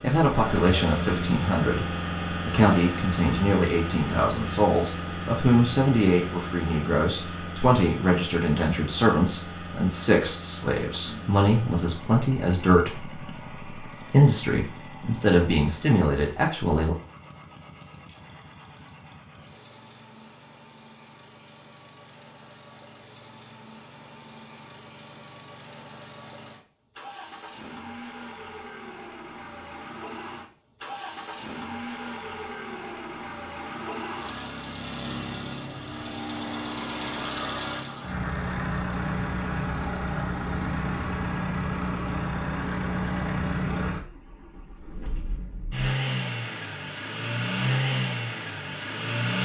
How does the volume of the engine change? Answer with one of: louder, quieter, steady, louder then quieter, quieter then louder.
quieter then louder.